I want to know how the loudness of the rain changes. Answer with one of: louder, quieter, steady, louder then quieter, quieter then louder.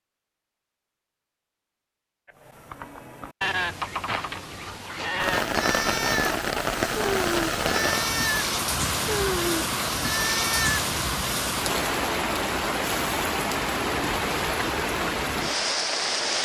steady.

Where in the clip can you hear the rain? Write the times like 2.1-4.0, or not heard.
5.2-16.4.